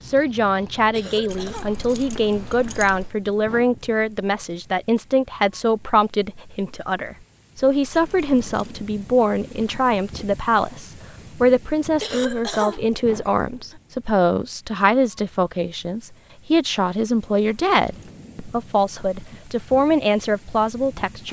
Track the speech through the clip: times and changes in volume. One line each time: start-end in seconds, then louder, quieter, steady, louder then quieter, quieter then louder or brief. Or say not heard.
0.0-21.2 steady.